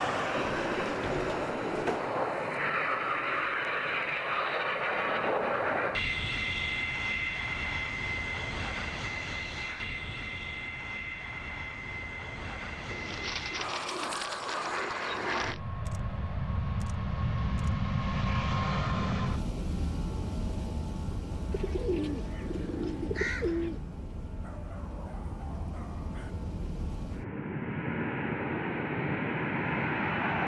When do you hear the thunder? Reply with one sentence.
You can't hear the thunder here.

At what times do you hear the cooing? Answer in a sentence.
You can hear the cooing from 0.3 to 2.1 s, from 12.9 to 15.6 s and from 21.5 to 23.8 s.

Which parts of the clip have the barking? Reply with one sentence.
The barking can be heard from 24.4 to 26.4 s.